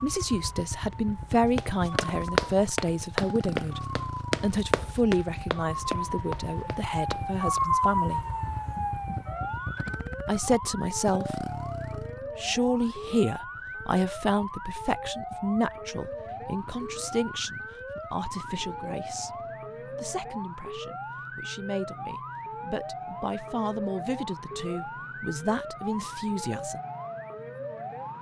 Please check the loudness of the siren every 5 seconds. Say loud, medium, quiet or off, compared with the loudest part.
medium, loud, medium, medium, medium, medium.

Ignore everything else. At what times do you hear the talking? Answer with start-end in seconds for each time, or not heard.
0.0-3.8, 4.4-8.2, 10.2-11.4, 12.3-19.3, 19.9-26.8.